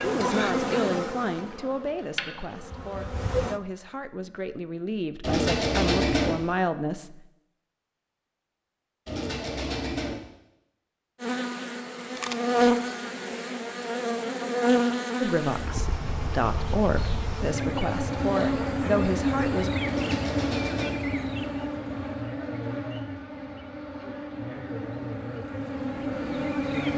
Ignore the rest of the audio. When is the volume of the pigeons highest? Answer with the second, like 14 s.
6 s.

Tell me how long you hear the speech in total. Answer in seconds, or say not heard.
12 s.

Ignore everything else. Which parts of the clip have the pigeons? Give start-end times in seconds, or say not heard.
5.2-6.3, 9.1-10.2, 19.9-20.9.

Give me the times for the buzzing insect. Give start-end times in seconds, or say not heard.
0.0-3.6, 11.2-26.9.